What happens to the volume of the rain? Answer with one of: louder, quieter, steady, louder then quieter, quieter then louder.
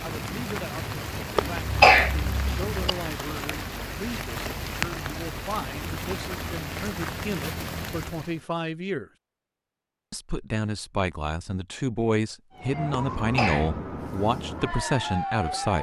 steady.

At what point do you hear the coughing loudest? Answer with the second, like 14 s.
2 s.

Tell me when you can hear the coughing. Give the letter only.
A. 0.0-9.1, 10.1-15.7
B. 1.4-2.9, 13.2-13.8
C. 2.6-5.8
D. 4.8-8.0
B.